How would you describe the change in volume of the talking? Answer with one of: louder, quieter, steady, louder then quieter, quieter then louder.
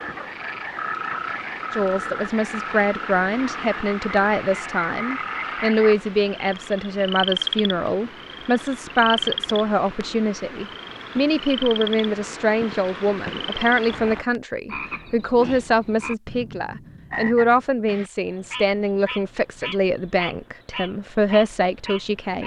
steady.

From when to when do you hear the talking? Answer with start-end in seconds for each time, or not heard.
1.7-22.4.